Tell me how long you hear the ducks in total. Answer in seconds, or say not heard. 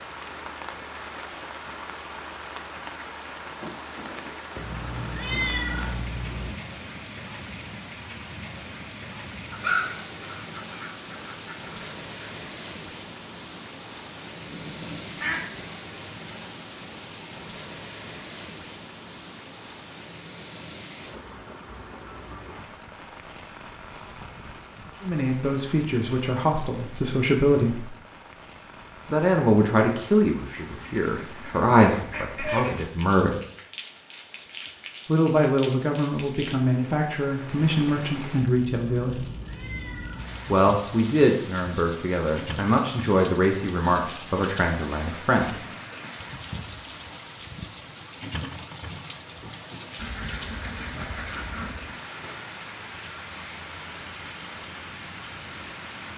8 s.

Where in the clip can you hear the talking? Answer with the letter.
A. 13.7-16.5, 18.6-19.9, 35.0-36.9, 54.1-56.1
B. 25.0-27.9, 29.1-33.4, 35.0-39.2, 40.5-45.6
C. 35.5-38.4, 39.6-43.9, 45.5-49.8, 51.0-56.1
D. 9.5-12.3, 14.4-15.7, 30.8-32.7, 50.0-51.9
B.